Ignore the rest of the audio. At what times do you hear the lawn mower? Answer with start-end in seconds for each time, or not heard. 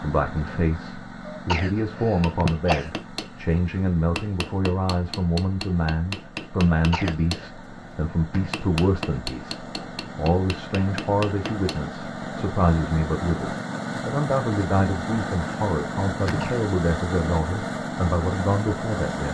0.0-19.2.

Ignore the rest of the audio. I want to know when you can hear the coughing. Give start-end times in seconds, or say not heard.
1.3-2.9, 6.7-7.5, 16.2-16.6.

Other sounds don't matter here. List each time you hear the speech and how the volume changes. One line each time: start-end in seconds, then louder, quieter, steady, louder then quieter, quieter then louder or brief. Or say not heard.
0.0-19.2 steady.